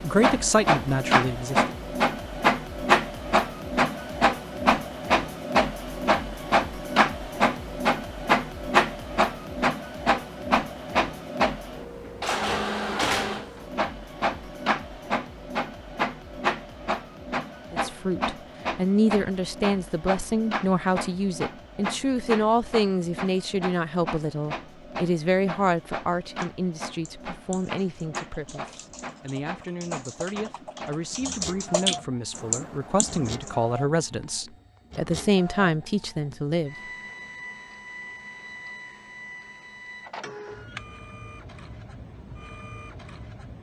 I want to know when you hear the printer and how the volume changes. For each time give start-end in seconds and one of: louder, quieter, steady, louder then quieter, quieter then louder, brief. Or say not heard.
0.0-43.5 quieter.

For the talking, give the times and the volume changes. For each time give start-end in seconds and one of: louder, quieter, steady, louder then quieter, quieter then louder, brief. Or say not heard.
0.0-1.8 brief
17.7-36.8 quieter then louder.